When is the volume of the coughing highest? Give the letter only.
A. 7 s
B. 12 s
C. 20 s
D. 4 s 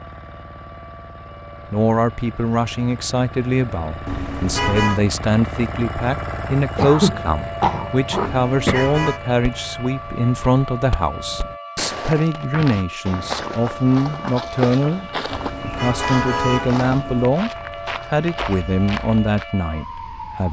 A.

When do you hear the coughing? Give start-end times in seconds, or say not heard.
6.8-8.9.